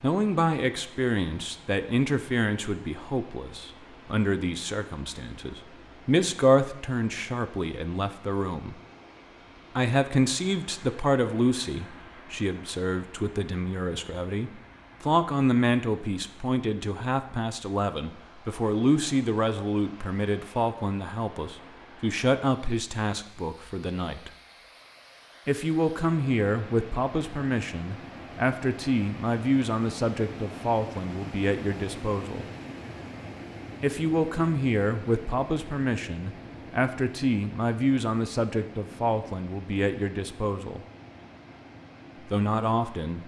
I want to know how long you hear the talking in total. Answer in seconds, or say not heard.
38 s.